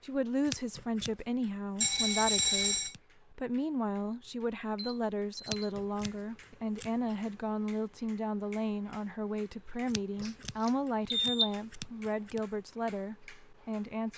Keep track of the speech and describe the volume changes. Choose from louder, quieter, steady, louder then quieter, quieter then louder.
steady.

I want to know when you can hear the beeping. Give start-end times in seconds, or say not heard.
1.8-3.0, 4.8-5.6, 10.2-11.5.